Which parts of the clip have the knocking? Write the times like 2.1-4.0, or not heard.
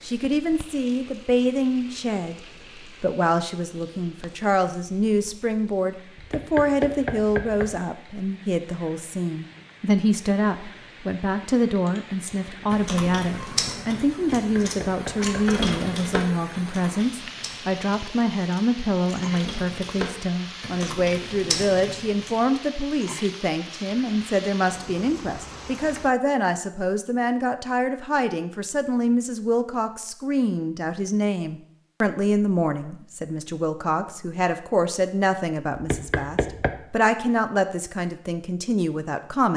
6.2-7.8, 14.2-15.6, 35.8-36.8.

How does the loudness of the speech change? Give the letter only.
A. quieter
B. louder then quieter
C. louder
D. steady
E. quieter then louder
D.